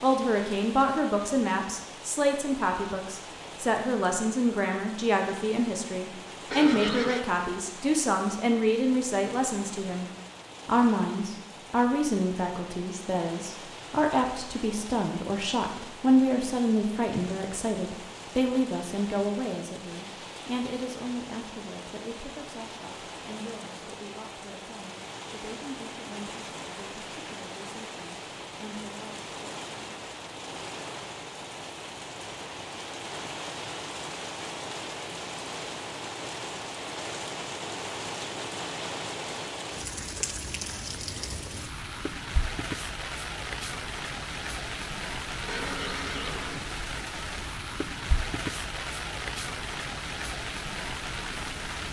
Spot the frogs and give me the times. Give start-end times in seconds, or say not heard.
not heard.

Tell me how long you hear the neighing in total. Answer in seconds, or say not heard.
2 s.